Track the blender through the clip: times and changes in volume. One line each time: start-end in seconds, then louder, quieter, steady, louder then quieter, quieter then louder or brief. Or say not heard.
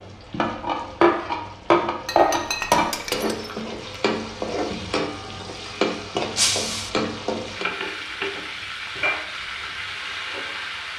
not heard.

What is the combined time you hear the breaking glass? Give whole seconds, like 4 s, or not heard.
2 s.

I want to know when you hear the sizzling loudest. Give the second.
2 s.